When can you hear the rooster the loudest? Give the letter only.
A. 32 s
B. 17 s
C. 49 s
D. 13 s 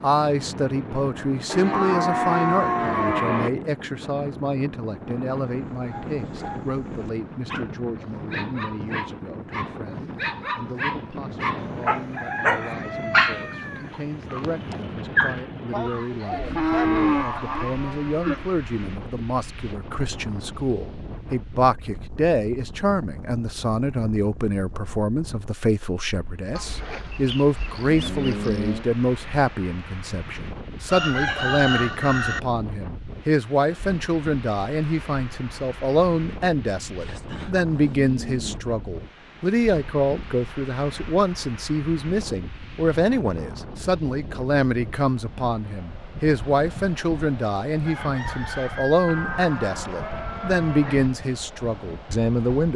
A.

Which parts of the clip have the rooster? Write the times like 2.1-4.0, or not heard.
11.6-14.8, 30.9-32.4, 47.9-49.5.